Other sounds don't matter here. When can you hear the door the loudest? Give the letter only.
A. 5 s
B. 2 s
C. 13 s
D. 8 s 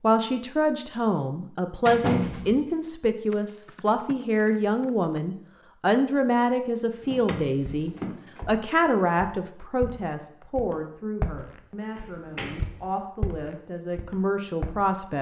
B.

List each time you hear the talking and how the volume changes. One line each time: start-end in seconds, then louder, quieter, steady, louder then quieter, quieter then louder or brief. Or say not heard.
0.0-15.1 quieter.